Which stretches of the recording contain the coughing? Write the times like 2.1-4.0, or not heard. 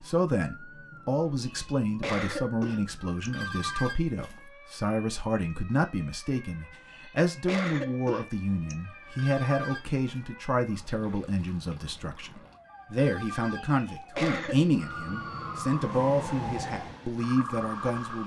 1.4-3.3, 6.9-8.8, 13.6-14.8.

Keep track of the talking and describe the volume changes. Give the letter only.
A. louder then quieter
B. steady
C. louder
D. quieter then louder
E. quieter
B.